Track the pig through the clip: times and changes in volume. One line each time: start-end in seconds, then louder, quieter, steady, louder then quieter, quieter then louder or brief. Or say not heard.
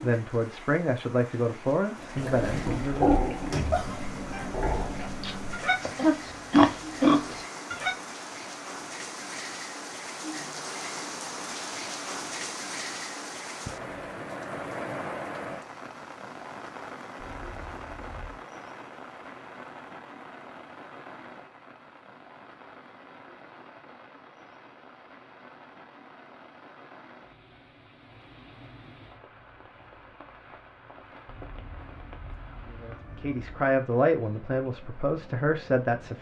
2.1-8.0 quieter then louder.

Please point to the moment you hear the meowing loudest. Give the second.
4 s.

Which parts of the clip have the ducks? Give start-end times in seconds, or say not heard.
not heard.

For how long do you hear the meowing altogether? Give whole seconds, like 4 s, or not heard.
6 s.